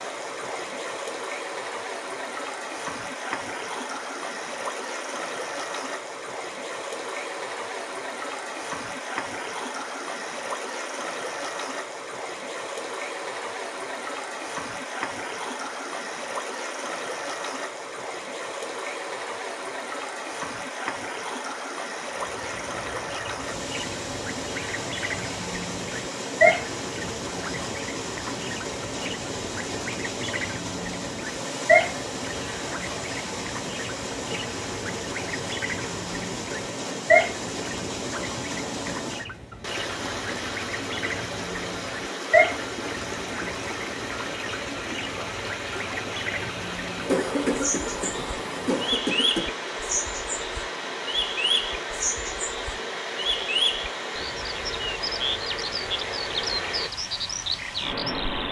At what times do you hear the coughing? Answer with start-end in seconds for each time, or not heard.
47.0-49.5.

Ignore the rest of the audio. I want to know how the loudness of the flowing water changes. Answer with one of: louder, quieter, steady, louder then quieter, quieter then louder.
steady.